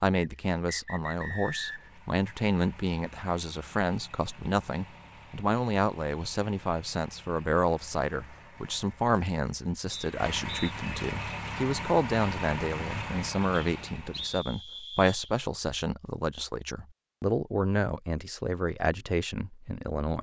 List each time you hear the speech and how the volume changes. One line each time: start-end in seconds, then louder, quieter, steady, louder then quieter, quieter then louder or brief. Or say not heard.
0.0-20.1 steady.